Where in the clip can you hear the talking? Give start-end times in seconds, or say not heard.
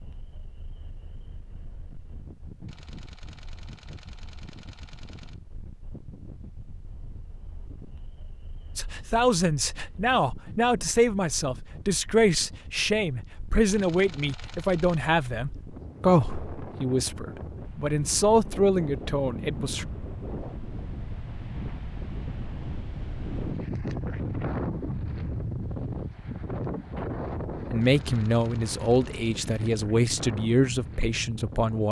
8.8-19.9, 27.7-31.8.